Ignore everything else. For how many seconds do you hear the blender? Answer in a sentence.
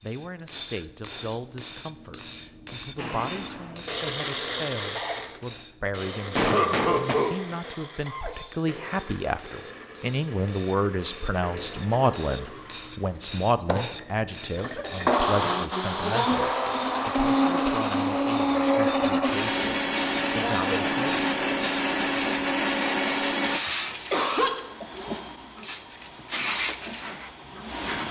You can hear the blender for 21 seconds altogether.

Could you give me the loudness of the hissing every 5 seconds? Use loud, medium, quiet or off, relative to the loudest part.
loud, medium, loud, loud, loud, loud.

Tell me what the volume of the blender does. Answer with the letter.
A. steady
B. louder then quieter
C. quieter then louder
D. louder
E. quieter
C.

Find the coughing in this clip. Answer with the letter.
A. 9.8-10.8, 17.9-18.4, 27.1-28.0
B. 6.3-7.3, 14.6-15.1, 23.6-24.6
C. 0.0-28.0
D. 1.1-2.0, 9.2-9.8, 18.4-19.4
B.